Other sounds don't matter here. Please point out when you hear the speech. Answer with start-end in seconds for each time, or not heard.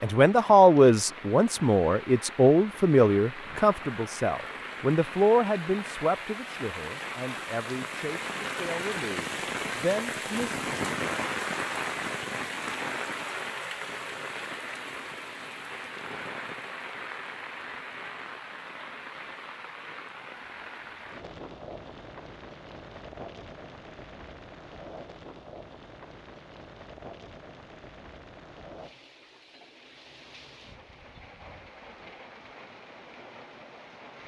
0.0-10.6.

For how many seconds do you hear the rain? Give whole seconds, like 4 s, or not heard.
34 s.